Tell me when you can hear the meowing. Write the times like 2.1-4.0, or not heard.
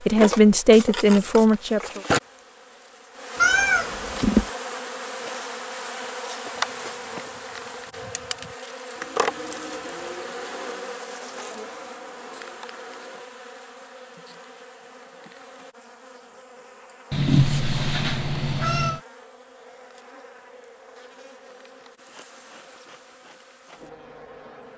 3.4-4.5, 17.1-19.0.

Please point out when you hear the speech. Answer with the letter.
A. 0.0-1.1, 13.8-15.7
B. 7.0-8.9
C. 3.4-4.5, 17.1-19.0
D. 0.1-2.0
D.